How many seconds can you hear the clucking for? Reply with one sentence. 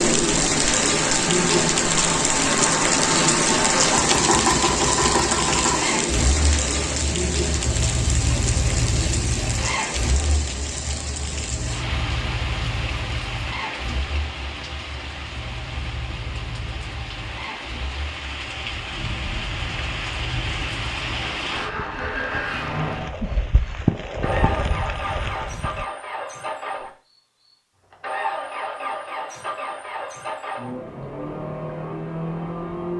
The clucking can't be heard in this clip.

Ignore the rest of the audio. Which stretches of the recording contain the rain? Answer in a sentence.
The rain can be heard from 0.0 to 25.9 s.